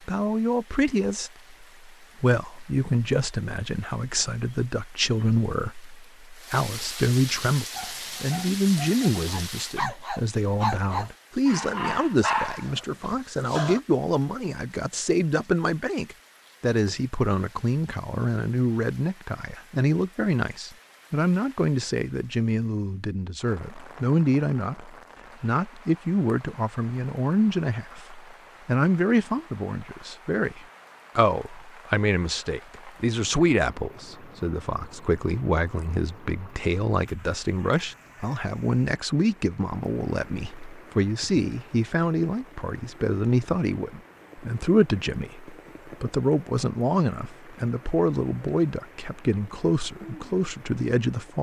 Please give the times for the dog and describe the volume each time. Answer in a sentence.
The dog can be heard from 7.5 to 13.8 s, getting louder.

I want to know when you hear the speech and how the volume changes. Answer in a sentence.
You can hear the speech from 0.1 to 51.3 s, at a steady volume.